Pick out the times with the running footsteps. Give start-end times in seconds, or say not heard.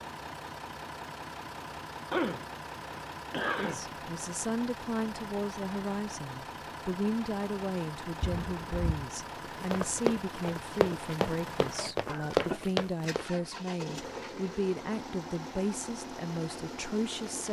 9.4-13.2.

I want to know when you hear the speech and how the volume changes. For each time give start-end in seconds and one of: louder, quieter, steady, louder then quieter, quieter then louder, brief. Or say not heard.
3.6-17.4 steady.